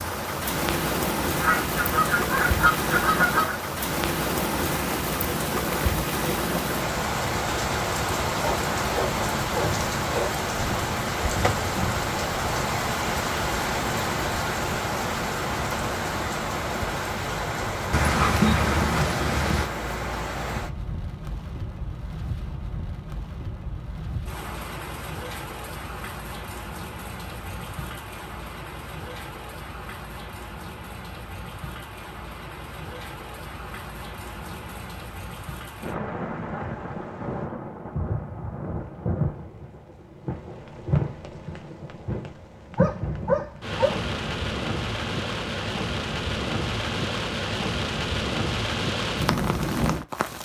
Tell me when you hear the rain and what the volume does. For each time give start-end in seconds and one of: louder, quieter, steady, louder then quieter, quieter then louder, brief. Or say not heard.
0.0-50.4 quieter then louder.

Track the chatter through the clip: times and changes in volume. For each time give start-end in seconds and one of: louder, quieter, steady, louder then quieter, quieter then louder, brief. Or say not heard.
not heard.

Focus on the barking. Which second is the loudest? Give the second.
18 s.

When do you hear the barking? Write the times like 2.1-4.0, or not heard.
8.4-10.3, 17.9-19.7, 42.8-44.0.